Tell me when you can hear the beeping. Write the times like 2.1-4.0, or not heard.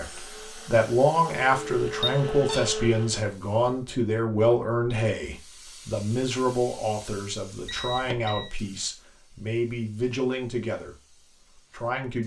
1.6-2.6, 7.7-8.5.